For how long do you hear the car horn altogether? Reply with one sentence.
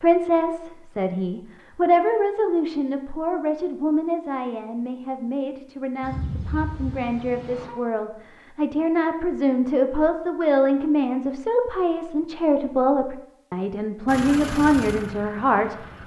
You can hear the car horn for 2 seconds altogether.